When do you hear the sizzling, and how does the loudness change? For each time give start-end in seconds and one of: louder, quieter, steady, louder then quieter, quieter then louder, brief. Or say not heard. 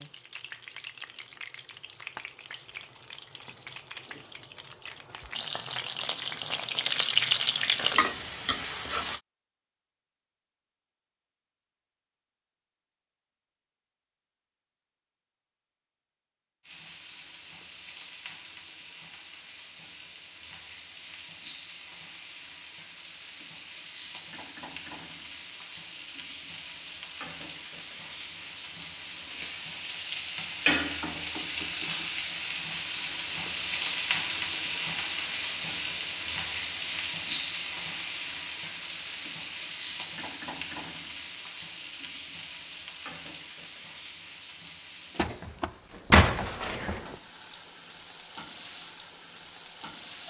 0.0-9.2 louder
16.6-50.2 louder then quieter.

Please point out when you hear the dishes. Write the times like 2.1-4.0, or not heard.
not heard.